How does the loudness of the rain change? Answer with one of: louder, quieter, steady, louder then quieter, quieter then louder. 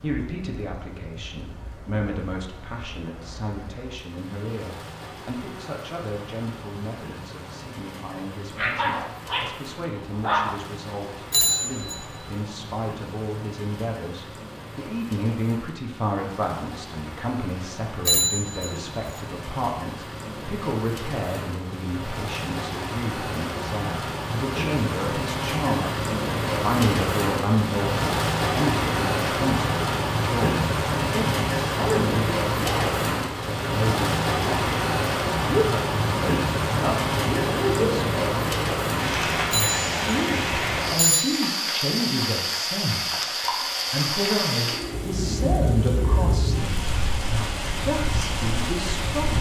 louder.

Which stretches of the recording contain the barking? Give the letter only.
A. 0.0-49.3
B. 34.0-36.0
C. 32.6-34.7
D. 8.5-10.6
D.